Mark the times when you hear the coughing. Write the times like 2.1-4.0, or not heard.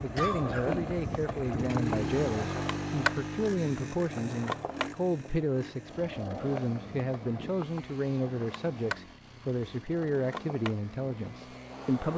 0.1-1.8.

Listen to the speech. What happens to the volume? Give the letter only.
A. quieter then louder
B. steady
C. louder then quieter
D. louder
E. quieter
B.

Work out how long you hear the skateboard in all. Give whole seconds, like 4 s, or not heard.
12 s.